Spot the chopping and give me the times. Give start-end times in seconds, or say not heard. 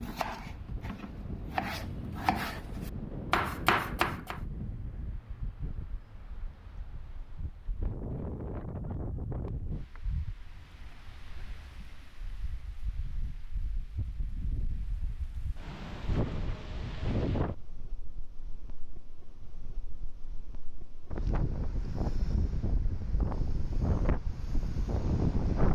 0.0-4.3.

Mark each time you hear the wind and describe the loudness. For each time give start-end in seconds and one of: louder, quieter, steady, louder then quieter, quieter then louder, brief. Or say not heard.
0.1-25.7 quieter then louder.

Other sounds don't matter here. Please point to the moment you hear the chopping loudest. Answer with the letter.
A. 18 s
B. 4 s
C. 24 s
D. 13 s
B.